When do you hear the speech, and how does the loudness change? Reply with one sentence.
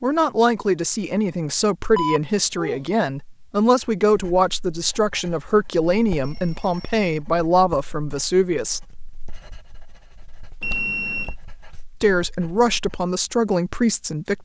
The speech can be heard from 0.0 to 8.9 s, at a steady volume; and briefly from 12.0 to 14.3 s.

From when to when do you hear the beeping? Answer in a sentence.
The beeping can be heard from 1.9 to 2.8 s, from 6.2 to 7.1 s and from 10.6 to 11.3 s.